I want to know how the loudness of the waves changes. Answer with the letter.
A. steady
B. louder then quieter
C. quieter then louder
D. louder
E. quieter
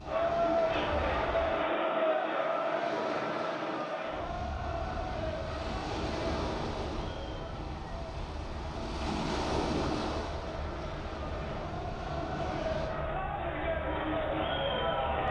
B.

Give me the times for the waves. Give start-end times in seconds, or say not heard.
0.0-12.9.